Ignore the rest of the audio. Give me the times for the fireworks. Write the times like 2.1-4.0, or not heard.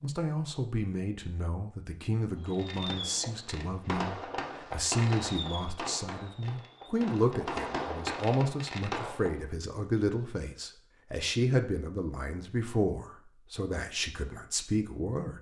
2.4-9.4.